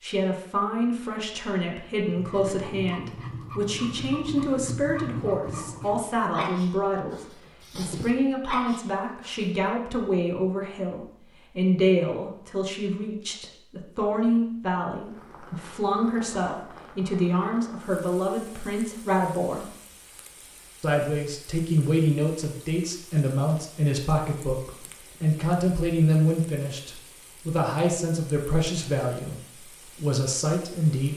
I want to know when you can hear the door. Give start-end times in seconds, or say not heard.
not heard.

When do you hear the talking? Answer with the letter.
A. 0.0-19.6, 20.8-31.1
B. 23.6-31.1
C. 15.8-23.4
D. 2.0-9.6
A.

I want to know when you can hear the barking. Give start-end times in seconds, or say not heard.
2.0-9.6.